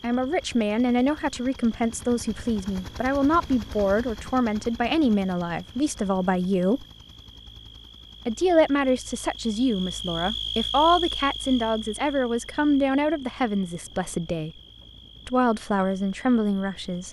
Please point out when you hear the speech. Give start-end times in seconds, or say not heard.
0.0-6.8, 8.2-14.5, 15.2-17.0.